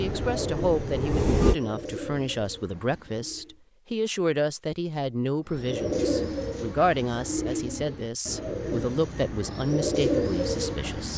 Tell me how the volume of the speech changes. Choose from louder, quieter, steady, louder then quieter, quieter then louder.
steady.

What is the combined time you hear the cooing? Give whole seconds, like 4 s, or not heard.
9 s.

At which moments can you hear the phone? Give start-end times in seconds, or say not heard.
not heard.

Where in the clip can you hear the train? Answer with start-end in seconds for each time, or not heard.
0.0-1.6.